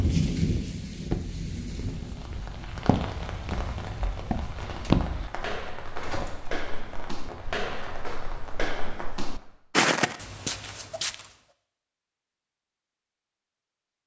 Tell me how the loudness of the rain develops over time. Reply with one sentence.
The volume of the rain goes down.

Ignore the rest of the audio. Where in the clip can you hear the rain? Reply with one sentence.
You can hear the rain from 0.0 to 9.5 s.